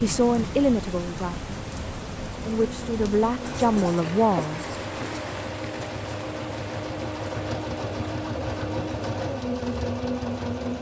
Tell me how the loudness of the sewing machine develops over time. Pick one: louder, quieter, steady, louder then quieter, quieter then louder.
louder.